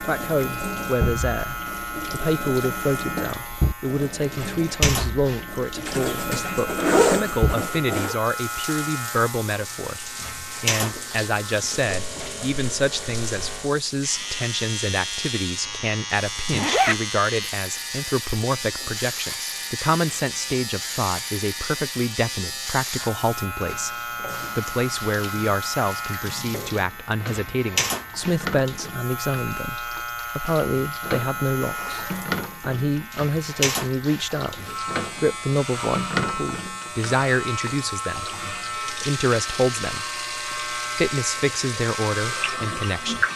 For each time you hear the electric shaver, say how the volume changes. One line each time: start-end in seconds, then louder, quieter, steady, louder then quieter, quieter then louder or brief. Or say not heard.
0.0-43.3 steady.